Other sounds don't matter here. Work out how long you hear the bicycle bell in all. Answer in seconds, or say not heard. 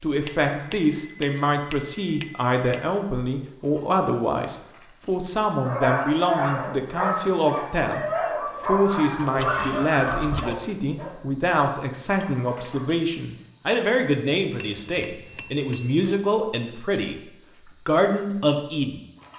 5 s.